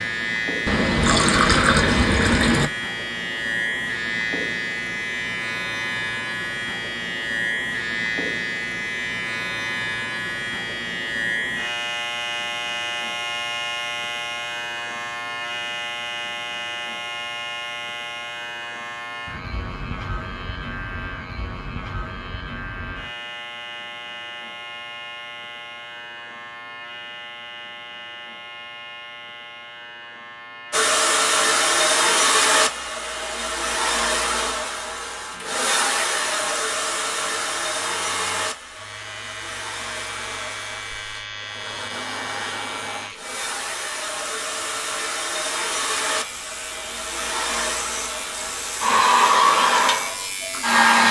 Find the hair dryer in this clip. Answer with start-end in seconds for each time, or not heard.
30.7-51.0.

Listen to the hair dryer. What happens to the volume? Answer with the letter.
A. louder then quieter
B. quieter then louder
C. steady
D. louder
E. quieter
B.